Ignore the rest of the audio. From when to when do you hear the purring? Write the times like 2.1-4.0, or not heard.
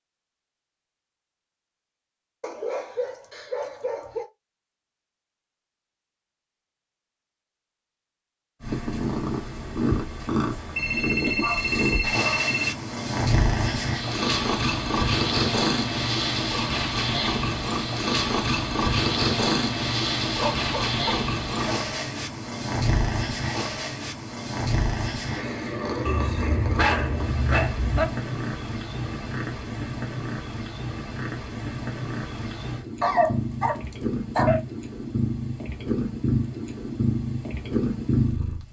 8.6-38.6.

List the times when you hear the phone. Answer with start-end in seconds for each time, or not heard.
10.8-12.8.